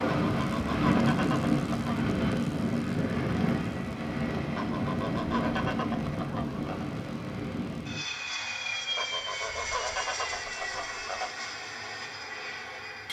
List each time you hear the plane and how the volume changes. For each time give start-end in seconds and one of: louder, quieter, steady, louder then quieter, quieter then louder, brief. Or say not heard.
0.0-13.0 quieter.